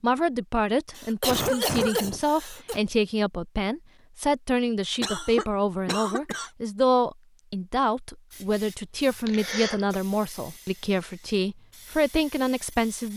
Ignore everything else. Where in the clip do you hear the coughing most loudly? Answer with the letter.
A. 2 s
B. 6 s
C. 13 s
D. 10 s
A.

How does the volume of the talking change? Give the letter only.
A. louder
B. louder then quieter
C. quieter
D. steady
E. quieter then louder
D.